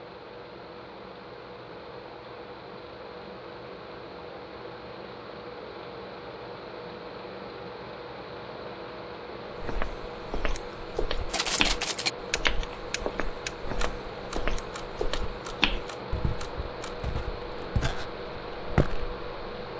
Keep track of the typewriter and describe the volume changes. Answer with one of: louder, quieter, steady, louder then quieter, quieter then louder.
quieter.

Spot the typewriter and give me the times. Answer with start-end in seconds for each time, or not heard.
11.3-16.9.